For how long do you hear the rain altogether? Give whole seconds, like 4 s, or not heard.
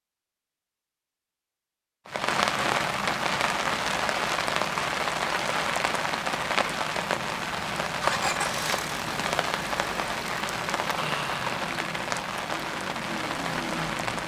12 s.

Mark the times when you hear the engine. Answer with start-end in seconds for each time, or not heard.
8.0-14.2.